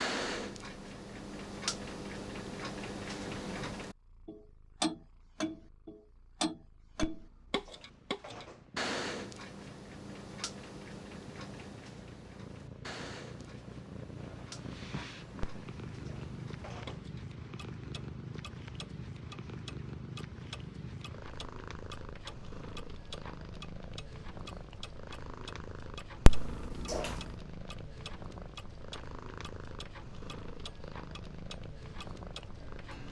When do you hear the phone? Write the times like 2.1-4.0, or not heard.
7.0-8.6, 15.4-17.0, 26.2-27.1.